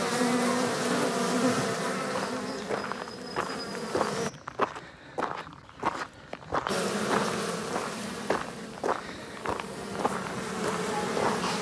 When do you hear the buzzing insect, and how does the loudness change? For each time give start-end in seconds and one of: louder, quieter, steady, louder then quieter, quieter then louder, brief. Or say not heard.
0.0-4.3 quieter
6.7-11.5 quieter then louder.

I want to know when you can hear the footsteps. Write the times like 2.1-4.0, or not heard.
2.0-11.5.